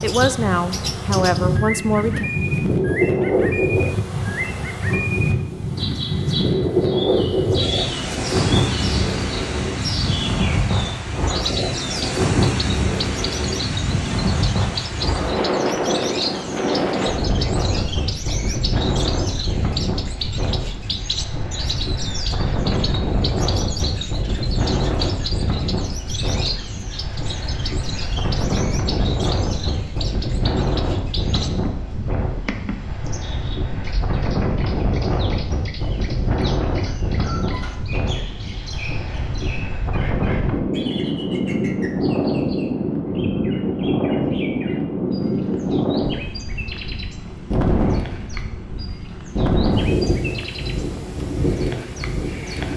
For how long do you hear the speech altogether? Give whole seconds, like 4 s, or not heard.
2 s.